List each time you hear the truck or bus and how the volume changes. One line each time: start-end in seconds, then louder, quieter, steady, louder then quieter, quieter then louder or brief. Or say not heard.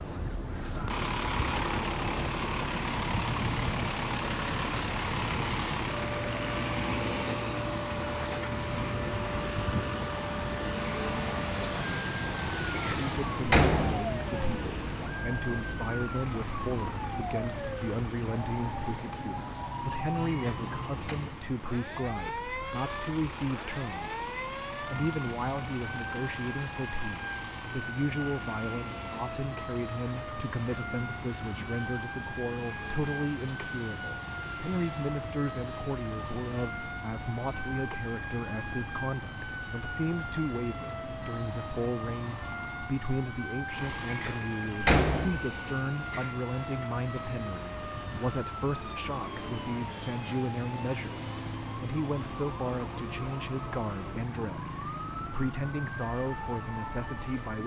0.0-57.6 quieter.